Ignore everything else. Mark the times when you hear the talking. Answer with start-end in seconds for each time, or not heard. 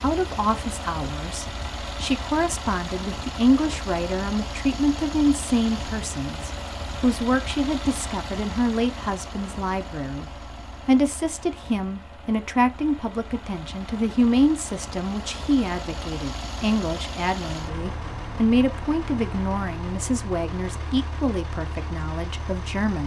0.0-10.2, 10.8-23.0.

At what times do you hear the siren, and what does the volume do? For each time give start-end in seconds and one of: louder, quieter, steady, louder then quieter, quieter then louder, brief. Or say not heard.
not heard.